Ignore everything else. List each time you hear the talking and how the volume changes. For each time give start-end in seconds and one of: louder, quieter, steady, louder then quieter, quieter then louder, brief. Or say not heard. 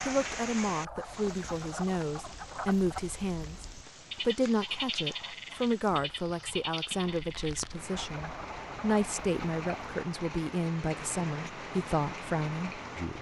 0.0-13.1 steady.